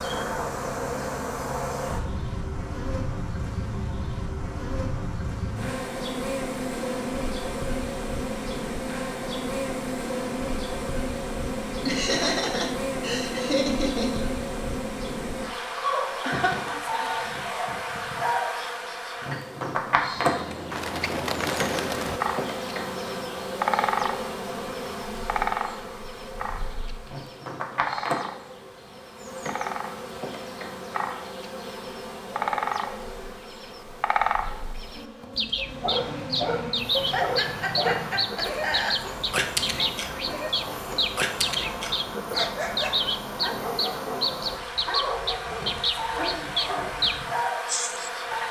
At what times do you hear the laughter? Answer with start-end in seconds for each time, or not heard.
11.8-14.2, 16.2-17.5, 37.1-39.0.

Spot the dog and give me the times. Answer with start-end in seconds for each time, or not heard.
35.5-47.0.